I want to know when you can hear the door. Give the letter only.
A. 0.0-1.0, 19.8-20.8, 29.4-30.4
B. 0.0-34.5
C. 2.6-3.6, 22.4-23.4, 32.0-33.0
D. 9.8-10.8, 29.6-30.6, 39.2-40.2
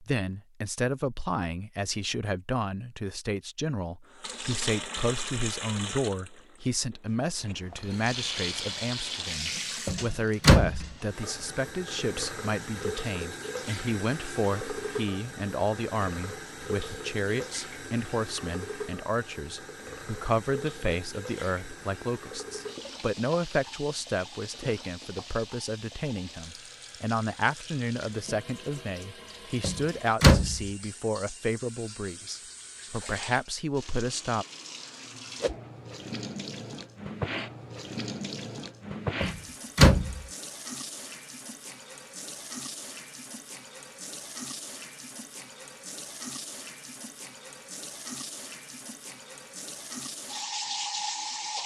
D.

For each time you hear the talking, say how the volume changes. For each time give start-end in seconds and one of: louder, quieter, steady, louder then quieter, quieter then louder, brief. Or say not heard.
0.0-34.5 steady.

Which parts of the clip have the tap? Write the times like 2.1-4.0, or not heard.
4.1-51.6.